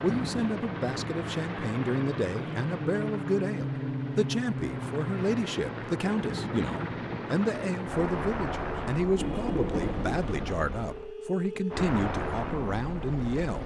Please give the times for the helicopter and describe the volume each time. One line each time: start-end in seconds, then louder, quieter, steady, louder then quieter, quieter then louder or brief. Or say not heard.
0.0-13.6 steady.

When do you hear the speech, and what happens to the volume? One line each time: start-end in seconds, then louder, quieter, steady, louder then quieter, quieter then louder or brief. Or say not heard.
0.0-13.6 steady.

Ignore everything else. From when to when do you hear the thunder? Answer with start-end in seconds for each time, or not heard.
9.2-10.3.